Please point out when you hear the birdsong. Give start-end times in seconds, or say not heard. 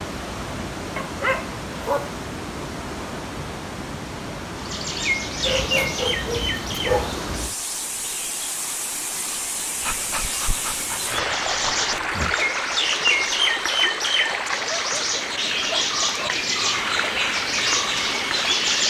4.5-18.8.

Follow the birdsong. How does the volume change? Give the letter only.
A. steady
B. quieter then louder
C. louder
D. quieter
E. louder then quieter
B.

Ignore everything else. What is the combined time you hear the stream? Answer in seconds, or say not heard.
19 s.